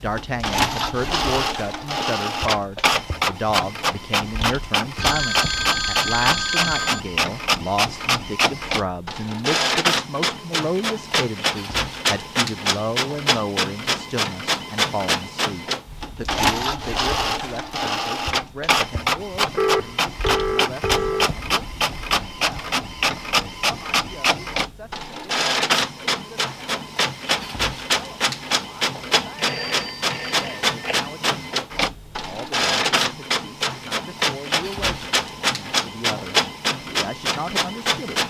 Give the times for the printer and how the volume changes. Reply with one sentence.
You can hear the printer from 0.0 to 38.2 s, at a steady volume.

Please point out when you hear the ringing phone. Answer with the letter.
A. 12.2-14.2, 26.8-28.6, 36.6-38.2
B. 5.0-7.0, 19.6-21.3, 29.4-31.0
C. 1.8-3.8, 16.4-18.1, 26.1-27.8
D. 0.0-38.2
B.